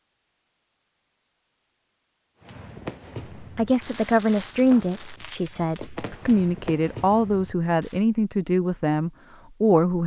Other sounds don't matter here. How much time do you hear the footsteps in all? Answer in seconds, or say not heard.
not heard.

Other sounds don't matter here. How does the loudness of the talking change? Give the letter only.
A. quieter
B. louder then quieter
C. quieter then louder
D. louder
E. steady
C.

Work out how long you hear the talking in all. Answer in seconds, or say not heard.
7 s.